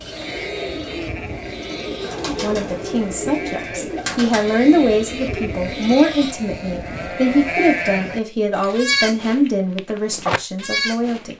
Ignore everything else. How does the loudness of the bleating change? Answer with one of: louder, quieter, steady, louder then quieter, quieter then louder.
louder.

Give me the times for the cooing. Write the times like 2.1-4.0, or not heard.
0.0-6.0.